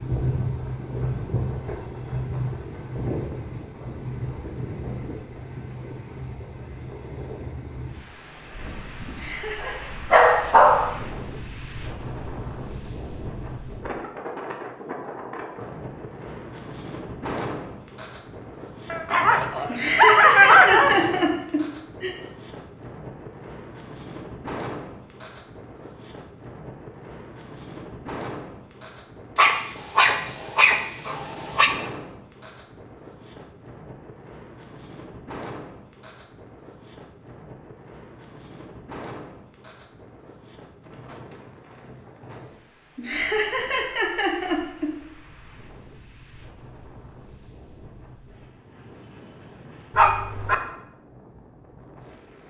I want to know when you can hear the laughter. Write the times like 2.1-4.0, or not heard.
9.1-9.9, 19.6-22.1, 43.0-44.9.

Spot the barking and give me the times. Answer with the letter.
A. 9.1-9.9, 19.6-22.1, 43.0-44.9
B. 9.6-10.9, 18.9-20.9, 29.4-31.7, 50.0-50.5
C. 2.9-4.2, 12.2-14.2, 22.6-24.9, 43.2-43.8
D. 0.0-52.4
B.